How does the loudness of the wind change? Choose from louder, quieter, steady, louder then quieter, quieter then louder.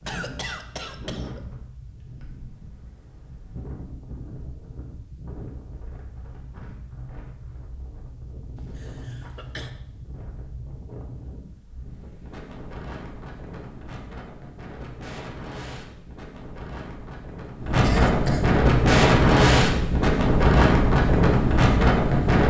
louder.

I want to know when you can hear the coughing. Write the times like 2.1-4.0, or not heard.
0.1-1.4, 8.6-9.7, 17.8-18.5.